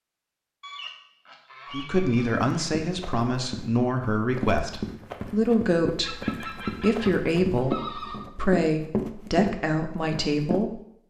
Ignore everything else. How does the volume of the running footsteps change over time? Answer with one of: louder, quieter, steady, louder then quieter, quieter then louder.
louder.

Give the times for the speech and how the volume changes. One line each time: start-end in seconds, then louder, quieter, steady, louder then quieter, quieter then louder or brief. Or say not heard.
1.7-10.8 steady.